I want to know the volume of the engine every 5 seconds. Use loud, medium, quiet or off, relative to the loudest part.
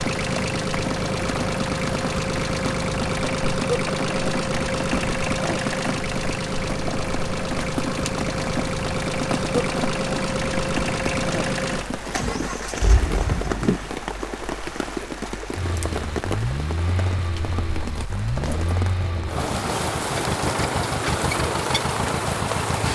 loud, loud, loud, medium, loud.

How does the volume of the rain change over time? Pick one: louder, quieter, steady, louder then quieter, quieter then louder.
steady.